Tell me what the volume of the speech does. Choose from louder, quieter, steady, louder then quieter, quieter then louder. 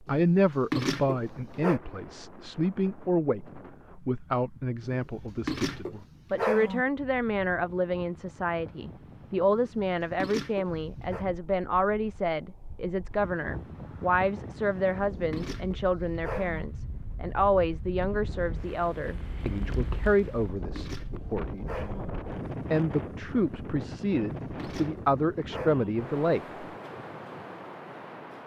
steady.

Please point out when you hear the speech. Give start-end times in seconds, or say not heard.
0.1-22.0, 22.7-26.4.